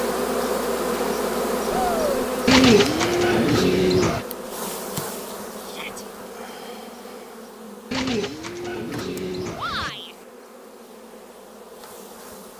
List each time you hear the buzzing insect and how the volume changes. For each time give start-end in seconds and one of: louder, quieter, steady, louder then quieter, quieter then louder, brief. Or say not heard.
0.0-12.5 quieter.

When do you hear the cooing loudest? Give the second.
3 s.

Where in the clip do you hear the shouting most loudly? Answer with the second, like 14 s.
2 s.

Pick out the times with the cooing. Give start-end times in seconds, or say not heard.
2.5-4.2, 7.9-9.9.